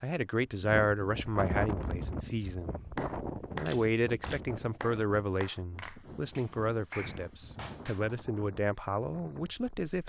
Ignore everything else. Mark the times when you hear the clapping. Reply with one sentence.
You can hear the clapping from 3.0 to 8.2 s.